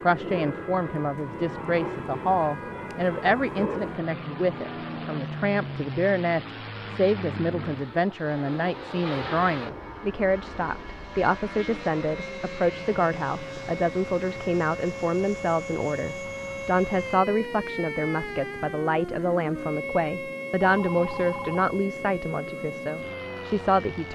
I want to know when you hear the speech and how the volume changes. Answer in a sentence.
The speech can be heard from 0.0 to 24.1 s, at a steady volume.